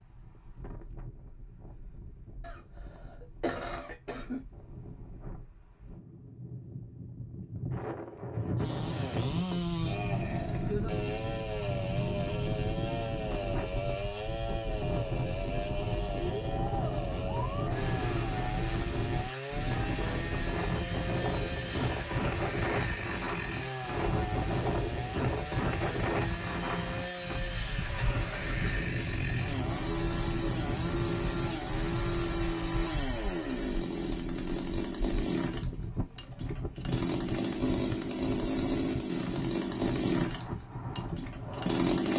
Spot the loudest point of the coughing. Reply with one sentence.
The loudest moment of the coughing is at 4 seconds.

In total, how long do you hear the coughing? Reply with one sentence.
The coughing can be heard for 3 seconds in total.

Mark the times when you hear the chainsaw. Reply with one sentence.
You can hear the chainsaw from 8.6 to 42.1 s.